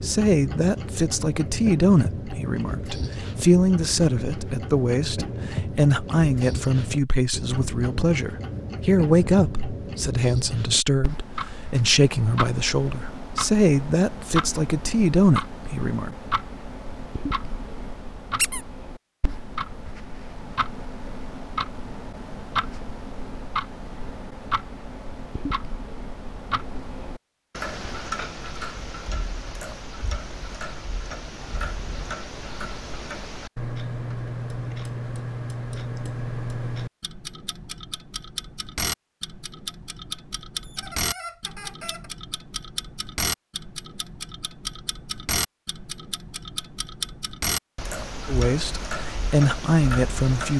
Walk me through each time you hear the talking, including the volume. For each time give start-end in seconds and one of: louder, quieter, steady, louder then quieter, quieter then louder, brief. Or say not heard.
0.0-16.1 steady
48.2-50.5 brief.